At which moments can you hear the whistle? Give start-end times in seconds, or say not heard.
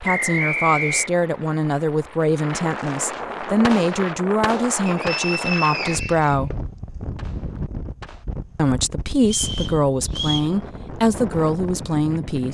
0.0-1.1, 4.8-6.3, 9.2-10.5.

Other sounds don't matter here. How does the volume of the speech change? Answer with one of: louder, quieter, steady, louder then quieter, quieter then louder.
steady.